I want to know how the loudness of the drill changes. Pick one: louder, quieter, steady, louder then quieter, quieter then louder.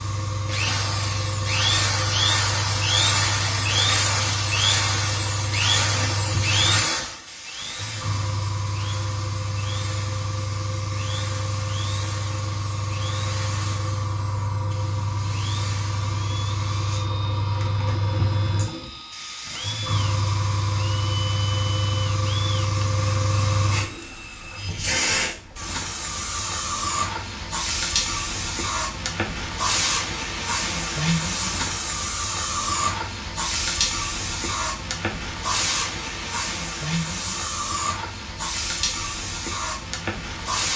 quieter.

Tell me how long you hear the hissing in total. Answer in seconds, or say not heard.
41 s.